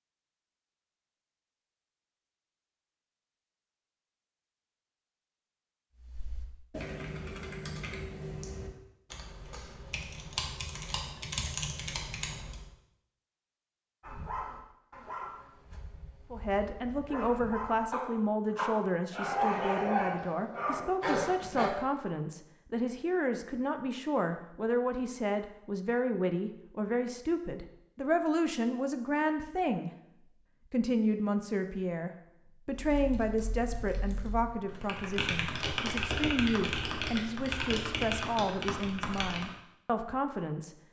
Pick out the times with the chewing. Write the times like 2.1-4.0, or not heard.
not heard.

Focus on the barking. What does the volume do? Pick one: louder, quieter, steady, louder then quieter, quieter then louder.
quieter then louder.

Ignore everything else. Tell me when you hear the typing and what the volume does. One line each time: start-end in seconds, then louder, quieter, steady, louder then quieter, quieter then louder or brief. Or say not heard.
6.0-12.7 quieter then louder
32.7-39.5 louder.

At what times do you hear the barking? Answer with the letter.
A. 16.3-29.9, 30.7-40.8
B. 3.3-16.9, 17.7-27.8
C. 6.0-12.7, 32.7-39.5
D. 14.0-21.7
D.